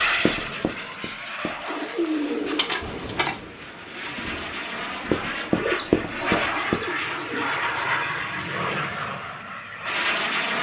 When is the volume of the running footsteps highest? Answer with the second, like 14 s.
6 s.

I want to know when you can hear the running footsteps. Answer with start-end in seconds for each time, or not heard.
0.2-1.6, 5.1-6.8.